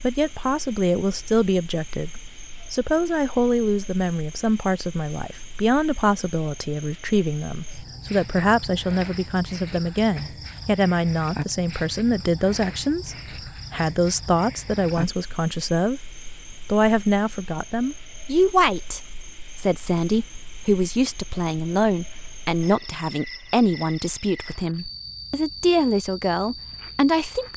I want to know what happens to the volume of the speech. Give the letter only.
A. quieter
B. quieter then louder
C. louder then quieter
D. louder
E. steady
E.